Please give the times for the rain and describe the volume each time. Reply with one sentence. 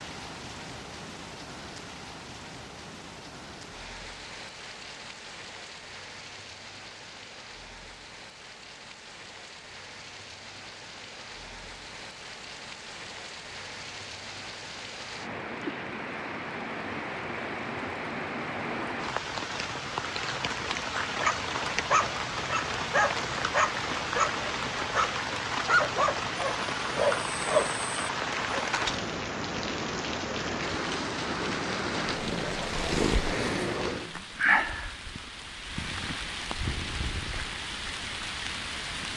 You can hear the rain from 0.0 to 39.1 s, getting louder.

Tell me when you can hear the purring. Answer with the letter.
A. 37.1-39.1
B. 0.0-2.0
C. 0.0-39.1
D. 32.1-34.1
D.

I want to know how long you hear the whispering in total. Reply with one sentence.
The whispering can't be heard in this clip.